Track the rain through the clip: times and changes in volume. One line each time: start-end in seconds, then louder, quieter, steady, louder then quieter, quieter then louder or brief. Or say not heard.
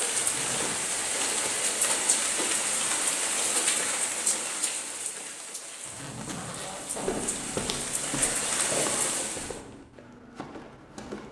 0.0-9.6 quieter then louder.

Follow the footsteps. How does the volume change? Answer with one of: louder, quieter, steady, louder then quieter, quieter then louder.
quieter.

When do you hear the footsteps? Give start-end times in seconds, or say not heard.
7.0-11.2.